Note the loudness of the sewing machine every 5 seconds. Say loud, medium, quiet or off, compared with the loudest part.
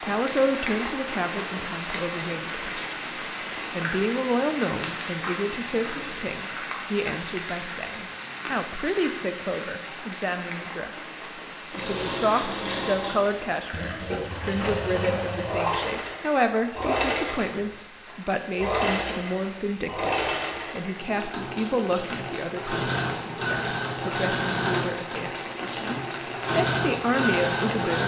off, off, loud, loud, loud, loud.